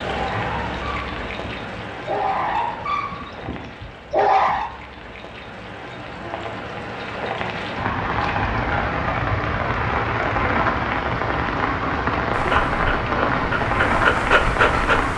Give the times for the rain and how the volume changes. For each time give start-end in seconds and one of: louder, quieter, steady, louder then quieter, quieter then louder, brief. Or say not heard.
0.0-15.1 quieter then louder.